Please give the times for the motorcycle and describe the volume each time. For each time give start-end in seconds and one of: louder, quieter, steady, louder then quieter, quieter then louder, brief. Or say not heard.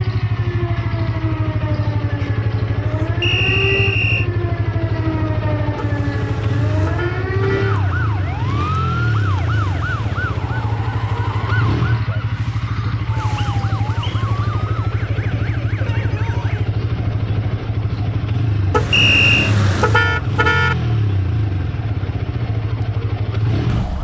0.0-23.9 steady.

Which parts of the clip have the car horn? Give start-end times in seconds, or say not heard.
5.8-7.8, 18.7-20.8.